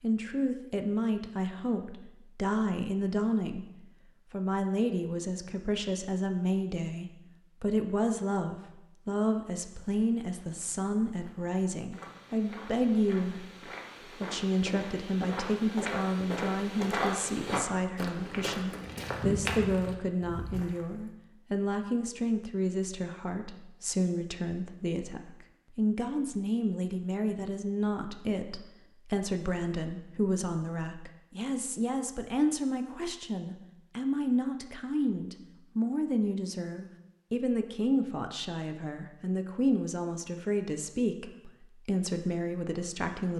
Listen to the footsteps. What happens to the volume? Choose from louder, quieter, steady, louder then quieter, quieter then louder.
louder.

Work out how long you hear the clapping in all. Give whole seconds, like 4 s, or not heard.
not heard.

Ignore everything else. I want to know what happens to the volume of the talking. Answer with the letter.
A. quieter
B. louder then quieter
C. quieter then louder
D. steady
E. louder
D.